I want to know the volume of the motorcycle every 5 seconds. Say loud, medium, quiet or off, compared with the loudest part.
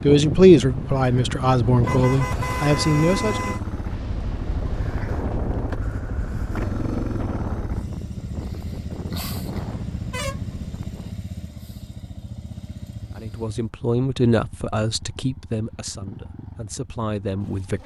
loud, loud, medium, medium.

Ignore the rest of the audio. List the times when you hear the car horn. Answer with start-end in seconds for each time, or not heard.
1.8-3.6, 9.2-10.7.